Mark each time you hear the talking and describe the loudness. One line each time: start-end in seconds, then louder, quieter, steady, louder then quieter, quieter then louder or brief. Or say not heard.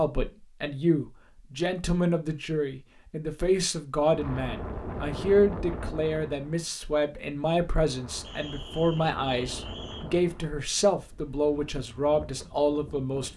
0.0-13.3 steady.